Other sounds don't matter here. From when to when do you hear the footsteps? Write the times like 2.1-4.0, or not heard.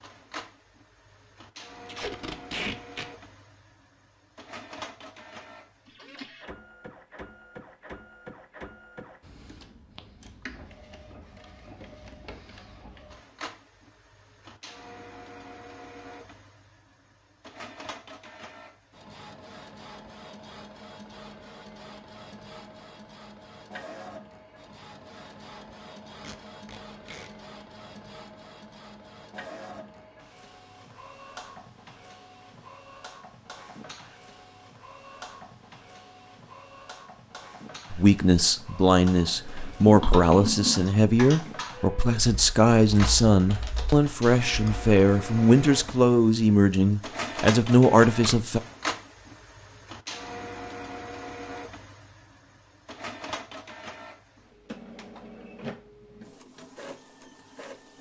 not heard.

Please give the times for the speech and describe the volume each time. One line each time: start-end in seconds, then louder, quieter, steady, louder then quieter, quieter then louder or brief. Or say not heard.
37.9-48.6 steady.